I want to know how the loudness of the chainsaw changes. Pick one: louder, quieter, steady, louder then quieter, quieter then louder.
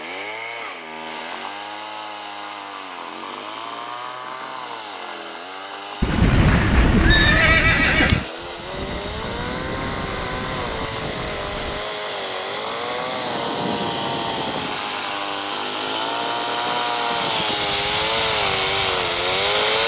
louder.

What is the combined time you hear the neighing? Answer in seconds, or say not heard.
2 s.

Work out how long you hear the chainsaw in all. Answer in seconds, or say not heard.
20 s.